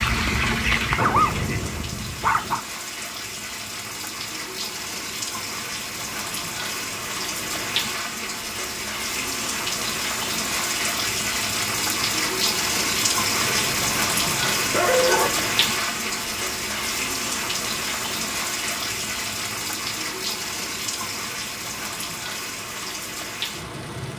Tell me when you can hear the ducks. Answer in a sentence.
The ducks can be heard from 0.0 to 1.6 s.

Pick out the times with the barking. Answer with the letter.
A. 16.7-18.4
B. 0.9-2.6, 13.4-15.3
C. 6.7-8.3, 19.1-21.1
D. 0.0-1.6
B.